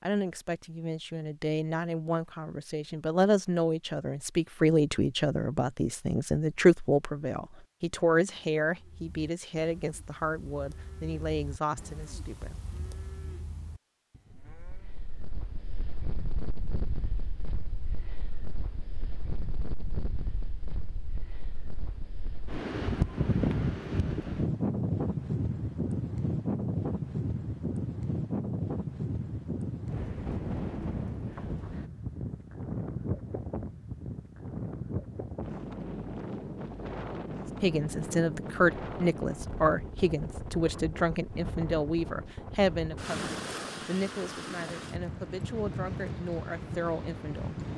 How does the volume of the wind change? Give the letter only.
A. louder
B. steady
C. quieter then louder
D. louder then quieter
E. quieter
D.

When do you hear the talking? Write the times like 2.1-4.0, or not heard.
0.0-12.6, 37.6-47.5.